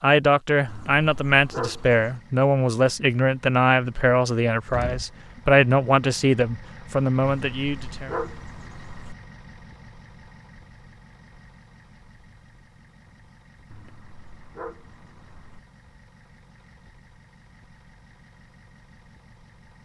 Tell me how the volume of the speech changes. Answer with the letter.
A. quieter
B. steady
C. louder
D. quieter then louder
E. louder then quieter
B.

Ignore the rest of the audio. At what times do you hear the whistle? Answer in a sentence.
You can't hear the whistle here.